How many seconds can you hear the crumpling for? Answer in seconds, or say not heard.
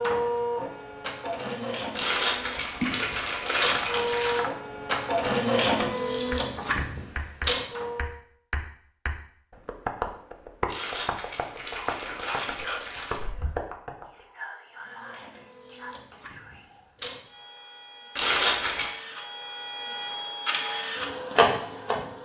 6 s.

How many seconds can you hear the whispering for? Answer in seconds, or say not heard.
5 s.